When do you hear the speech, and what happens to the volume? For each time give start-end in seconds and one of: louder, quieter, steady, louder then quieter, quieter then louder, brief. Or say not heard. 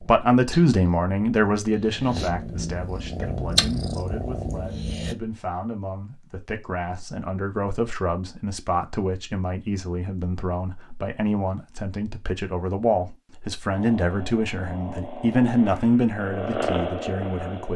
0.0-17.7 quieter then louder.